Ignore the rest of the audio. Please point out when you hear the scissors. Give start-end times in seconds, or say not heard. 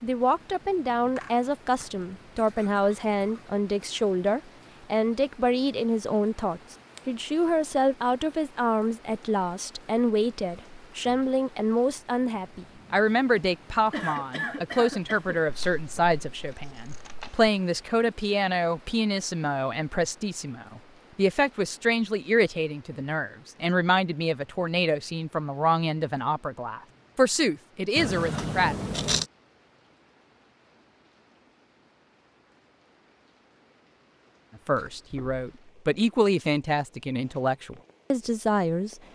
15.4-17.5, 27.9-29.2.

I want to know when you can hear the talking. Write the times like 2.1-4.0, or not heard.
0.0-28.8, 34.6-39.0.